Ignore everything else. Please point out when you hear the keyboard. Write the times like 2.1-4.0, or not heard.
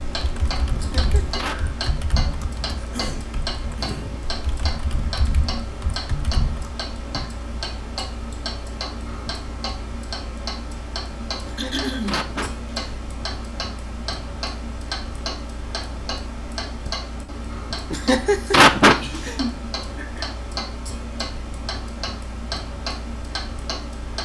0.1-6.8.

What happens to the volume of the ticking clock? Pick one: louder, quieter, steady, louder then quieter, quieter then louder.
steady.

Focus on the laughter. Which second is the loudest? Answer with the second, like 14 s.
19 s.